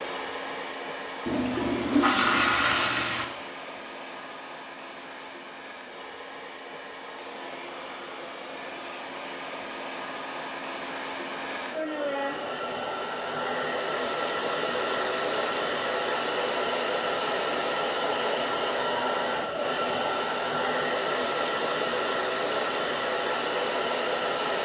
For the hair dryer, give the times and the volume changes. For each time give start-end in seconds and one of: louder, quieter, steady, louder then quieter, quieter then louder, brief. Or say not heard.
0.0-24.5 louder.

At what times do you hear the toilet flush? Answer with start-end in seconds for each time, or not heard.
1.2-3.2.